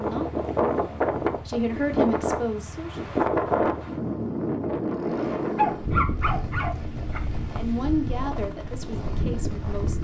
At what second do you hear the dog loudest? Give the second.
6 s.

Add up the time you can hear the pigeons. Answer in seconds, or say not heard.
not heard.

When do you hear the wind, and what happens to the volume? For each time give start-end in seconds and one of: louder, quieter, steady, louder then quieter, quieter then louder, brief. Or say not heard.
0.0-9.9 quieter.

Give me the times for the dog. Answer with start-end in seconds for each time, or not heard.
5.3-7.2.